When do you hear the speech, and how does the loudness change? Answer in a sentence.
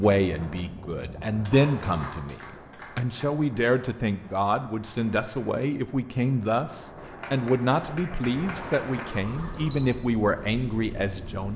The speech can be heard from 0.0 to 11.5 s, at a steady volume.